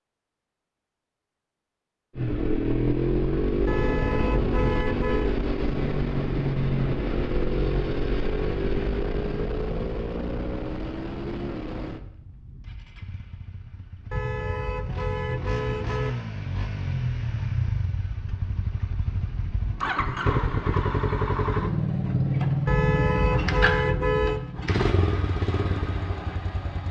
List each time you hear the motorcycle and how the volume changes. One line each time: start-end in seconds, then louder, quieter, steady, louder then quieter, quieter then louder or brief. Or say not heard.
2.1-26.8 quieter then louder.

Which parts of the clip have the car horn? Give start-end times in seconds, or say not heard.
3.6-5.3, 14.1-16.1, 22.6-24.4.